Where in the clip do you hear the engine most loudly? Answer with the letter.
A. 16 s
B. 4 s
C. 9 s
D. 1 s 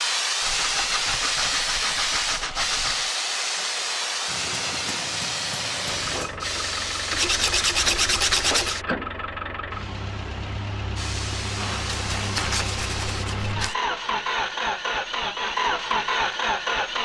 A.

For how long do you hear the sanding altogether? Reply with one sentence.
The sanding can be heard for 6 seconds in total.